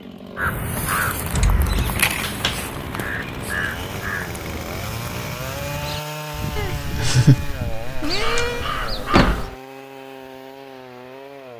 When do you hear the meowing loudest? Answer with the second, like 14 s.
7 s.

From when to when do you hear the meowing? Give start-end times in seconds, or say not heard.
1.3-2.0, 6.5-8.7.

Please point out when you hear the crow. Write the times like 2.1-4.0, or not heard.
0.3-9.5.